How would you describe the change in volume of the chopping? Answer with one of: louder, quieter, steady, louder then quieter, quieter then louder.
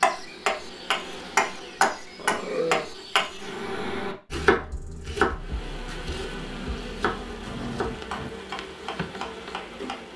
quieter.